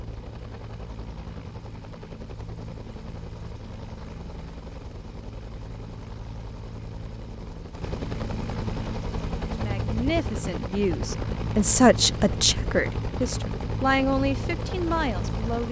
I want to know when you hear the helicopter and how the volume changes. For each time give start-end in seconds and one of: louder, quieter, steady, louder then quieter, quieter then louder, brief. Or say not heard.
0.0-15.6 louder.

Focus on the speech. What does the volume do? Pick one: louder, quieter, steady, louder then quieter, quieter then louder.
louder then quieter.